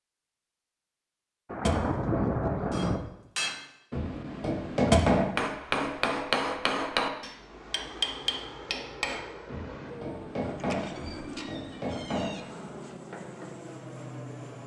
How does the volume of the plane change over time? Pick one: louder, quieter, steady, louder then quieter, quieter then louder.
steady.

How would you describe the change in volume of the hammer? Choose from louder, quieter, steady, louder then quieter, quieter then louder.
quieter.